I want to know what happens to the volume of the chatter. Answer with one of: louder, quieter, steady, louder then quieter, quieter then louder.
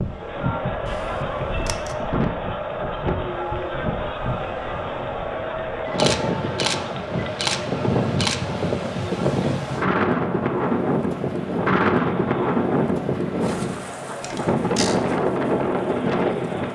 quieter.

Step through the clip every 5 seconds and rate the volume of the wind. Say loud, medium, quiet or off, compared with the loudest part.
medium, loud, loud, loud.